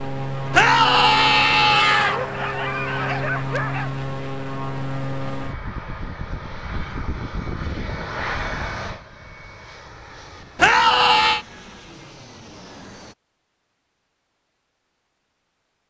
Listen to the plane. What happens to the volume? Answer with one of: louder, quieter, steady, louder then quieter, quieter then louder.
quieter.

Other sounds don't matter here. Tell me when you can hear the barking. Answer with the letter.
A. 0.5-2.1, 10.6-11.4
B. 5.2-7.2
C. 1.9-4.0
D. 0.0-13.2
C.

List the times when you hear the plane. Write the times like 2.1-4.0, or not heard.
0.0-13.2.